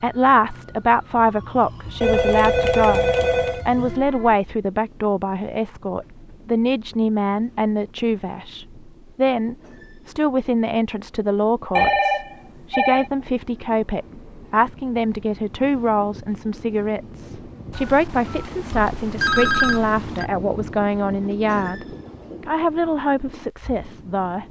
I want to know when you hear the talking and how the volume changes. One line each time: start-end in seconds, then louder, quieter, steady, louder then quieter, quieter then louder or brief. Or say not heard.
0.0-24.4 steady.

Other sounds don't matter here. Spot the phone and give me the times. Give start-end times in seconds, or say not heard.
2.0-3.6, 11.8-13.1, 17.7-20.2.